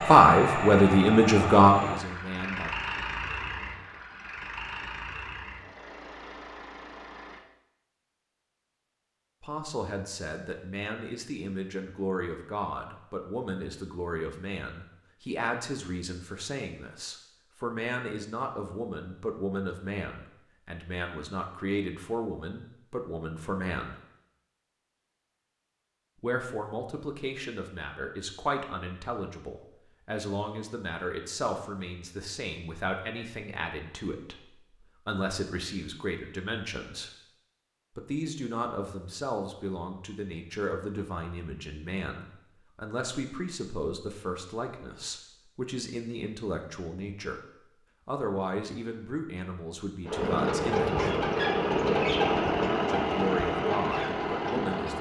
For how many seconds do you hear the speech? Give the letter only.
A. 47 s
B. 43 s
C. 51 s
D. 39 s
B.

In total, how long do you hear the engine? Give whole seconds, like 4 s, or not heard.
12 s.